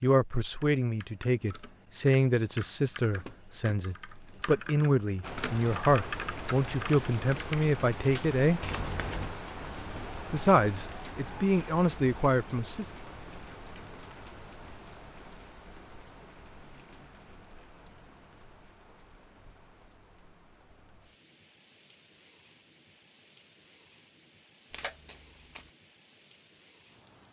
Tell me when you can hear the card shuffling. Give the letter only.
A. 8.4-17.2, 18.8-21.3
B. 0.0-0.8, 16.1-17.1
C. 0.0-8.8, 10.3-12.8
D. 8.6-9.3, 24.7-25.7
D.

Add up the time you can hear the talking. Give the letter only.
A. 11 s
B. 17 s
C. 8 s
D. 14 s
A.